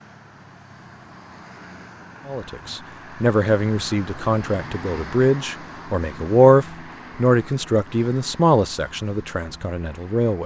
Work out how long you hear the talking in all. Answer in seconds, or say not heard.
8 s.